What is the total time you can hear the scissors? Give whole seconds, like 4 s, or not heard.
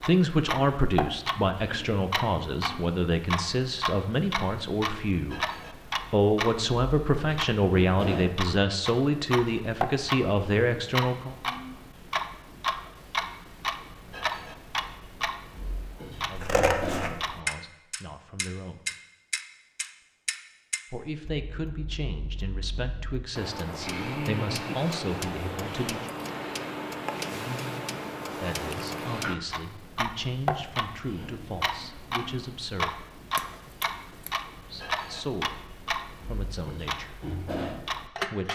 2 s.